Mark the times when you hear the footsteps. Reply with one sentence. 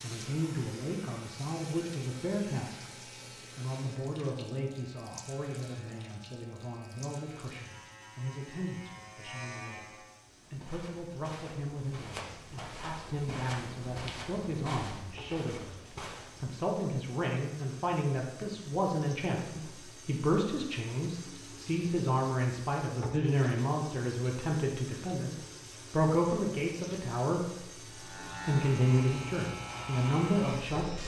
You can hear the footsteps from 10.2 to 16.6 s.